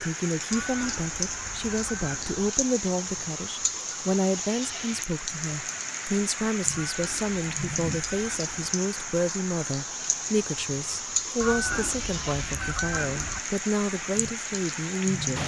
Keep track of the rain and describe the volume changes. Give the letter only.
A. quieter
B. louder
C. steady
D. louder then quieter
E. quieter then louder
C.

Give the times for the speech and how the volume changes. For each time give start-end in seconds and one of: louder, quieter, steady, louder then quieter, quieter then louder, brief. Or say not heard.
0.0-15.4 steady.